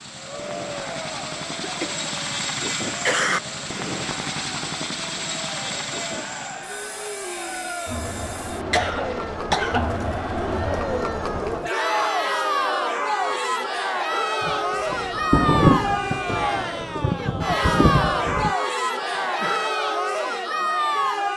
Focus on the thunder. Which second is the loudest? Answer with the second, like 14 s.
16 s.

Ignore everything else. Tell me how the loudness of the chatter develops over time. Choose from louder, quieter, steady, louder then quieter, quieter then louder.
louder.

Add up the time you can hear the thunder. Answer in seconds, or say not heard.
4 s.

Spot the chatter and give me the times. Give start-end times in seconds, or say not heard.
0.1-21.3.